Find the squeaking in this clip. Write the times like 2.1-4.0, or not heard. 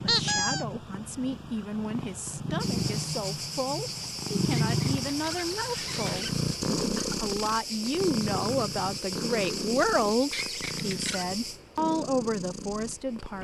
0.1-0.7, 4.7-6.3, 10.3-11.2.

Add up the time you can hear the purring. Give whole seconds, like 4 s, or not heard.
13 s.